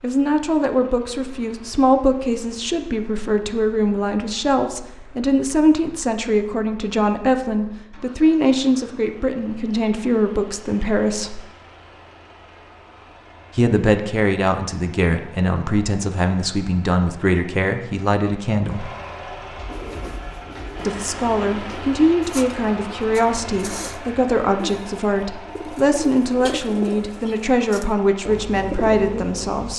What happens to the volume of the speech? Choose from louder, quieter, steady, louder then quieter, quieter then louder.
steady.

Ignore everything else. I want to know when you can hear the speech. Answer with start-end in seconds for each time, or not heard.
0.0-11.4, 13.6-18.9, 20.9-29.7.